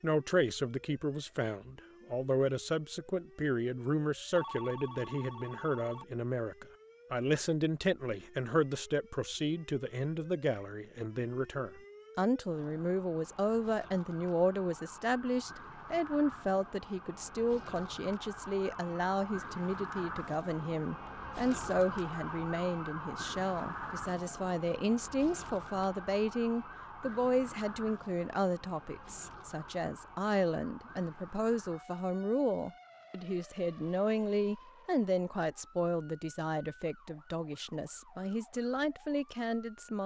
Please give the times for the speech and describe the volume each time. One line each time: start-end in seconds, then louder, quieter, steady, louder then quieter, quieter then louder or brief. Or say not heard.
0.0-40.0 steady.